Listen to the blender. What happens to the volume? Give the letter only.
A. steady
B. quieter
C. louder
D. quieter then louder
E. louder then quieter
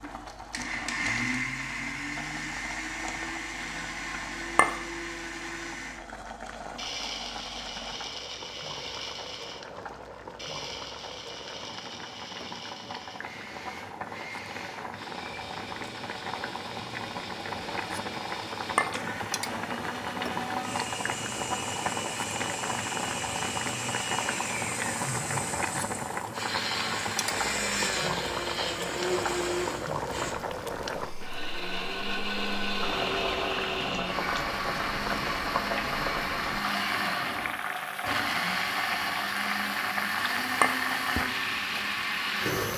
D.